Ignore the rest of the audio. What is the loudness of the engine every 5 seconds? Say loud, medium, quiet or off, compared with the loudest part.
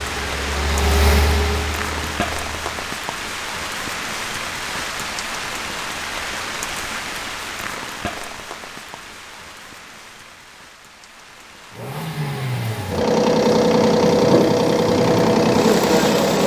medium, off, loud, loud.